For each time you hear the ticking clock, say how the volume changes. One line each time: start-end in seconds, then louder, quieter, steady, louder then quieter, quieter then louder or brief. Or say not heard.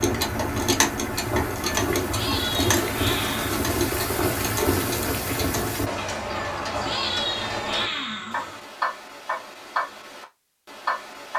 0.0-11.3 steady.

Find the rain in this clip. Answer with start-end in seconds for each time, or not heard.
0.0-5.9.